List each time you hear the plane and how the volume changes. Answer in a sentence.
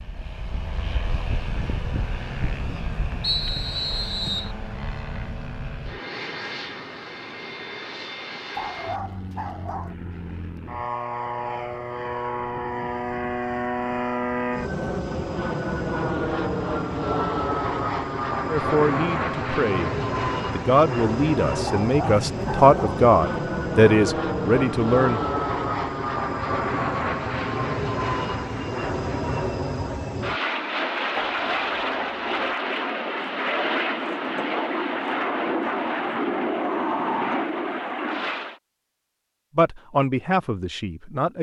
You can hear the plane from 0.0 to 38.6 s, getting louder.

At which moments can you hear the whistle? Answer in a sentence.
You can hear the whistle from 3.2 to 4.5 s and from 22.0 to 22.5 s.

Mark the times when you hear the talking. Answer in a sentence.
You can hear the talking from 18.5 to 19.9 s, from 20.5 to 25.2 s and from 39.5 to 41.3 s.